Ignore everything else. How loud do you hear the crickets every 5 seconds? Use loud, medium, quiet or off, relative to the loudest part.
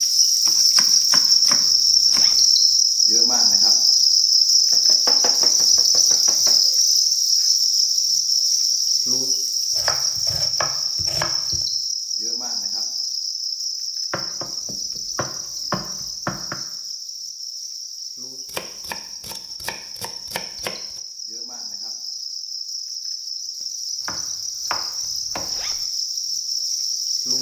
loud, loud, medium, quiet, quiet, medium.